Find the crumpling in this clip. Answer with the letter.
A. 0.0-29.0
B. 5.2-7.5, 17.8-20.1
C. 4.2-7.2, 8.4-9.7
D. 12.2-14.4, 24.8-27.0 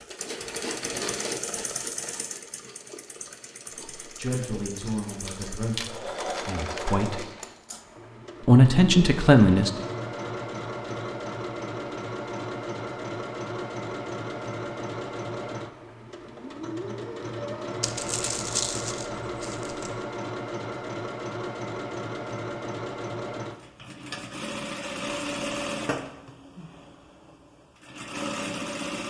B.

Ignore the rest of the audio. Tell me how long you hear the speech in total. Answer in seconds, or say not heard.
4 s.